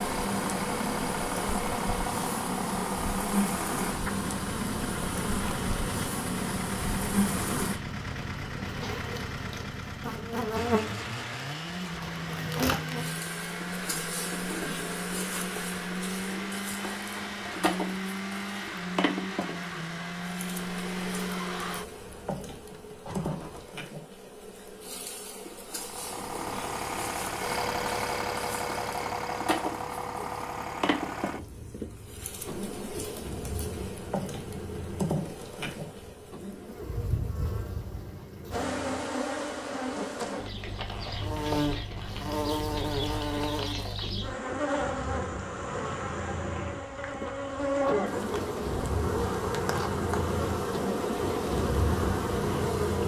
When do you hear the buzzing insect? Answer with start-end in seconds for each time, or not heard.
0.0-53.0.